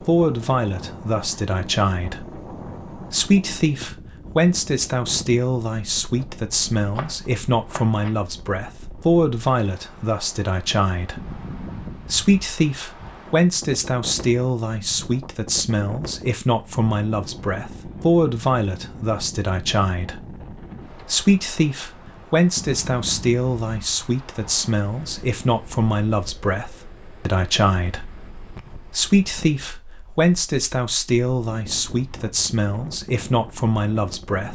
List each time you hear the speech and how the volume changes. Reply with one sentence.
You can hear the speech from 0.0 to 34.5 s, at a steady volume.